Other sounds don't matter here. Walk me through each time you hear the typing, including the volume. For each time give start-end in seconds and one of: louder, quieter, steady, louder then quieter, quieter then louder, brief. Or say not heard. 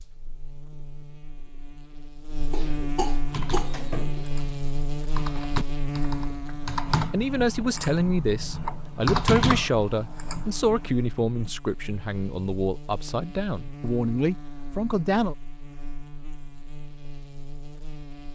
3.2-10.9 louder.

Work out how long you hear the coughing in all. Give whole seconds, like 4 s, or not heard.
2 s.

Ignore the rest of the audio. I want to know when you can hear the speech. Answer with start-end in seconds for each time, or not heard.
7.1-15.3.